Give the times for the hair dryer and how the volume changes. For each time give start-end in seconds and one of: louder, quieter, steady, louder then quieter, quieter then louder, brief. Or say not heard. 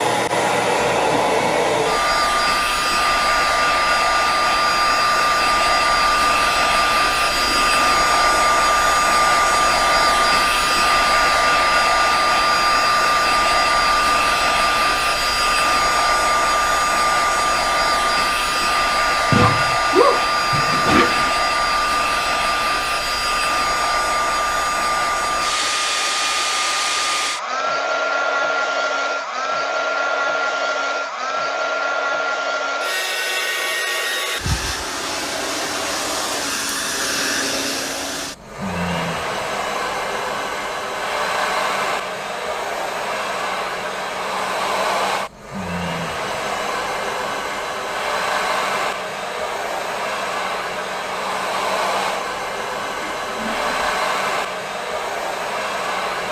0.0-56.2 quieter.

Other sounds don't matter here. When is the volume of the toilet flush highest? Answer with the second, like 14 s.
20 s.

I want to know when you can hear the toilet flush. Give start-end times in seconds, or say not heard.
7.3-8.4, 19.3-21.3, 53.0-54.0.